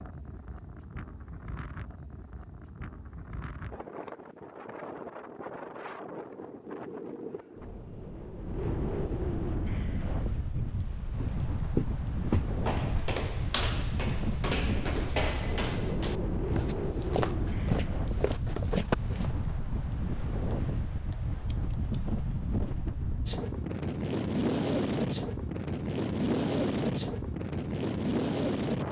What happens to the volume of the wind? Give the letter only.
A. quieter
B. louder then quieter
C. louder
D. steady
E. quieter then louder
C.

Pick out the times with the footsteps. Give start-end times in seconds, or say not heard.
10.5-19.4.